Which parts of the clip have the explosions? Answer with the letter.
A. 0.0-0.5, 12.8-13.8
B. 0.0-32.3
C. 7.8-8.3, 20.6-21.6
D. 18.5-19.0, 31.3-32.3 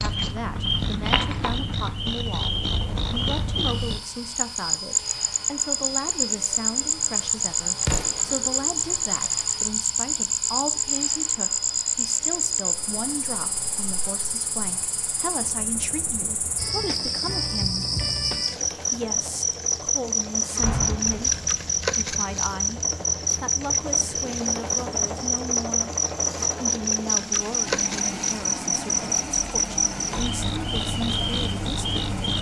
C.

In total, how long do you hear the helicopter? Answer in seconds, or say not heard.
32 s.